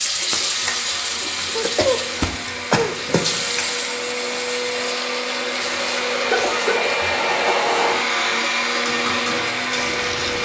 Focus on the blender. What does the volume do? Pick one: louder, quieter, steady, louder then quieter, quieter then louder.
louder.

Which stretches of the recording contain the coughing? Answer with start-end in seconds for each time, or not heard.
1.6-3.5, 6.1-7.5.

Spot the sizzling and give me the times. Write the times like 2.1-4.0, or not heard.
0.0-10.4.